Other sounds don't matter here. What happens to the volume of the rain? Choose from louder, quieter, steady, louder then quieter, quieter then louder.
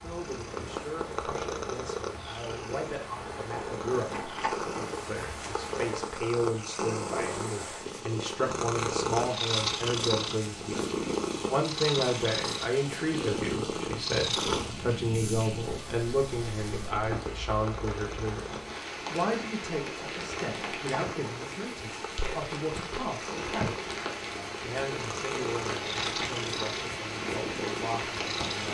louder.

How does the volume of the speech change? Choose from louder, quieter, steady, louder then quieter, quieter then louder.
louder then quieter.